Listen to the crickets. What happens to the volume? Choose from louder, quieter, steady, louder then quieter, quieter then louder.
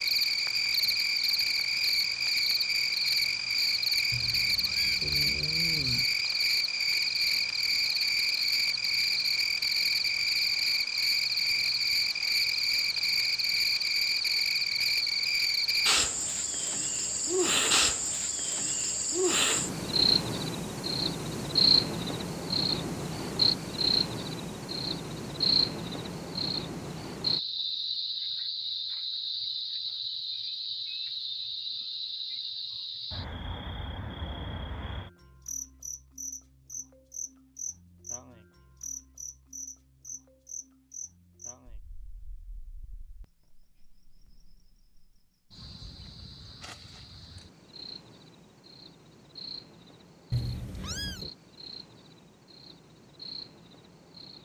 quieter.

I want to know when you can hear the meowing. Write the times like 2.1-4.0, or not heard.
4.1-6.0, 50.3-51.3.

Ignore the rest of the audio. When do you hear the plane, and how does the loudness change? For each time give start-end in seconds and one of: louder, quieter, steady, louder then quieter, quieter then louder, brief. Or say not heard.
not heard.